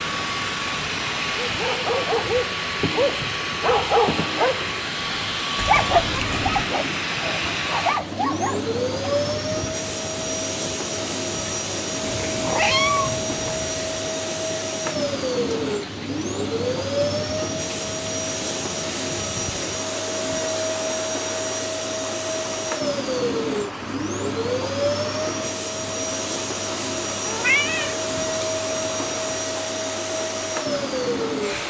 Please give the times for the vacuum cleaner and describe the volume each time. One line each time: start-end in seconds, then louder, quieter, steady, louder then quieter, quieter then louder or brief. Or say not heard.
0.0-31.6 steady.